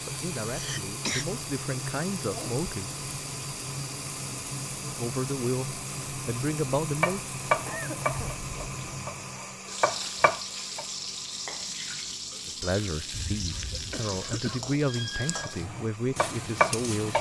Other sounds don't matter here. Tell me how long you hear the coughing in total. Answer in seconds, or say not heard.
3 s.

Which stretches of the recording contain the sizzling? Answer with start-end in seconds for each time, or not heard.
0.0-17.1.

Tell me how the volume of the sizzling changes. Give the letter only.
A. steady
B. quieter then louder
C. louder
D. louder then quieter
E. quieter
A.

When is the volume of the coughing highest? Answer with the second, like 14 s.
1 s.